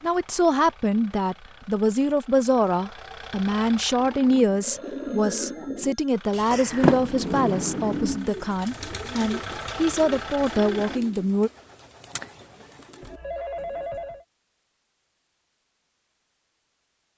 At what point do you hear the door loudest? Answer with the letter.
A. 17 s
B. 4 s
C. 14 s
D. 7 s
D.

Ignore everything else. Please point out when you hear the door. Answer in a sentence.
The door can be heard from 6.8 to 8.2 s.